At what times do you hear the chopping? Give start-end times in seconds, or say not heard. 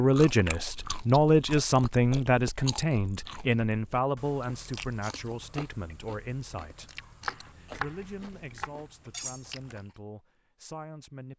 7.2-8.7.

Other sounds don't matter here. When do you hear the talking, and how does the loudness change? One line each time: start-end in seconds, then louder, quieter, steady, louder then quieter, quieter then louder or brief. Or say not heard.
0.0-11.3 quieter.